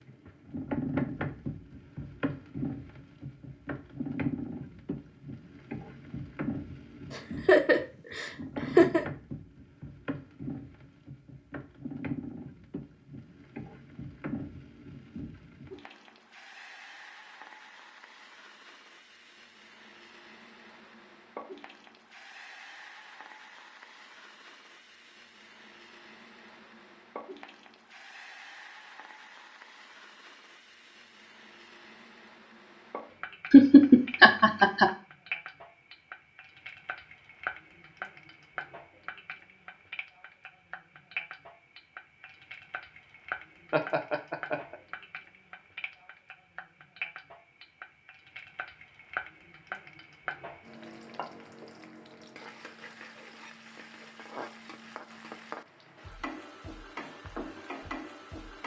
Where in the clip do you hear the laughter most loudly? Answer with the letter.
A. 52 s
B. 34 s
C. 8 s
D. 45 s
B.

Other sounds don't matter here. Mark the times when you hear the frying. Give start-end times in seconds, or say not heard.
0.0-58.6.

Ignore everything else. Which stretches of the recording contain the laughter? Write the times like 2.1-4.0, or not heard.
7.1-9.1, 33.5-34.9, 43.7-44.8.